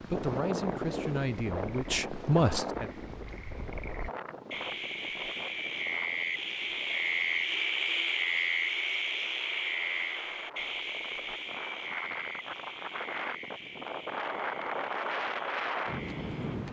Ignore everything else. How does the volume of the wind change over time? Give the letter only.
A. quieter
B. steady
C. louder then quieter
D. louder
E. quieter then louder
E.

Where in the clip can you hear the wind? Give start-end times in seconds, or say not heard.
0.0-16.6.